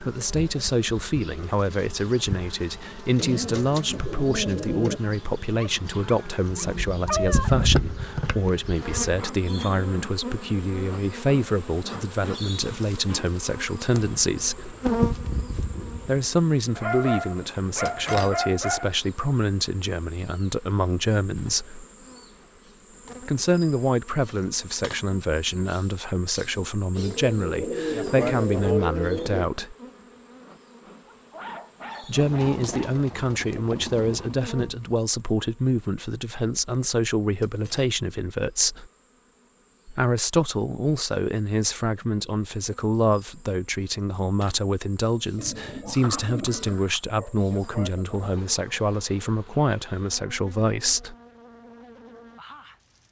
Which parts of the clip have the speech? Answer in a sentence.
The speech can be heard from 0.0 to 14.8 s, from 16.1 to 21.9 s, from 23.2 to 29.8 s, from 32.0 to 38.9 s and from 39.9 to 51.1 s.